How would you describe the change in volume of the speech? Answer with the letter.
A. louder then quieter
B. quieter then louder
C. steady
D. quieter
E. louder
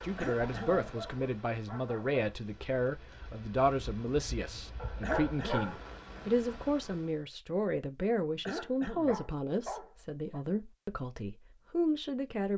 C.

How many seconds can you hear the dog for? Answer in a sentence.
The dog can be heard for 5 seconds in total.